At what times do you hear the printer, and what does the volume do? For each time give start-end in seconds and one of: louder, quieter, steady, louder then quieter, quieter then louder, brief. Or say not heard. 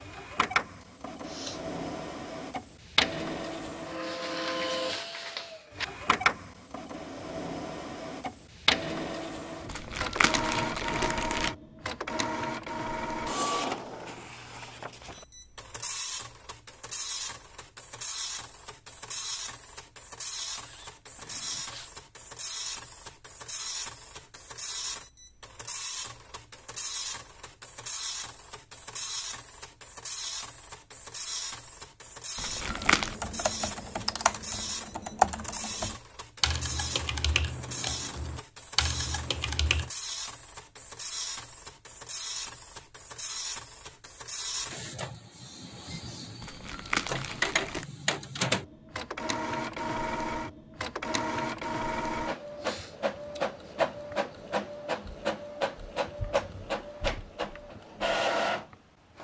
0.0-59.1 quieter then louder.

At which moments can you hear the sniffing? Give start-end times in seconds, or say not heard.
0.8-1.6, 20.5-21.9, 52.5-53.8.